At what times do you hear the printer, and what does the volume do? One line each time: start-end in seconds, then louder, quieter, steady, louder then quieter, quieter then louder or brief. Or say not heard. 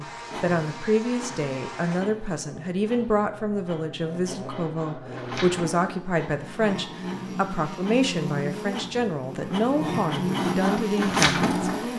0.0-11.9 louder.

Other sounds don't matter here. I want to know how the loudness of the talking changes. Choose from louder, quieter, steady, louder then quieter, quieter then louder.
steady.